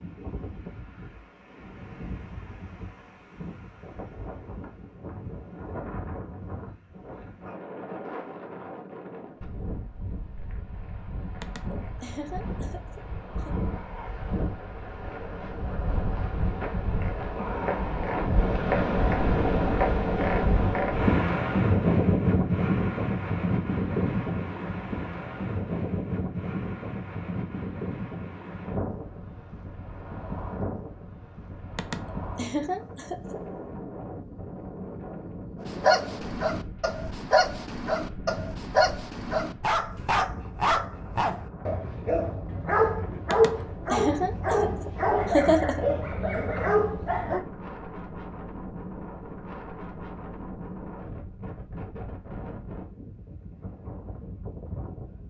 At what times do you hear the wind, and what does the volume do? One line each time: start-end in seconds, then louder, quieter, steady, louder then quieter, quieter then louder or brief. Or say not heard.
0.0-55.2 louder then quieter.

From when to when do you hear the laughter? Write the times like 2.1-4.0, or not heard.
11.4-13.5, 31.8-33.4, 43.3-45.9.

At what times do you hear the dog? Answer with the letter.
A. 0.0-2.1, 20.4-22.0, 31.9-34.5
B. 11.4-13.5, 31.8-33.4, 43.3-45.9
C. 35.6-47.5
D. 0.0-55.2
C.